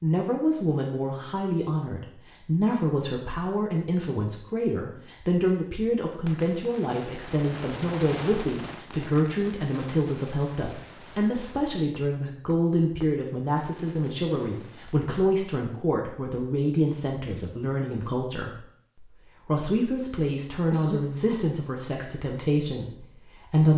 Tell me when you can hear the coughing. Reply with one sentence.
The coughing can be heard from 20.7 to 21.4 s.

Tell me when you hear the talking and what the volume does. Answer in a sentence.
You can hear the talking from 0.0 to 23.7 s, at a steady volume.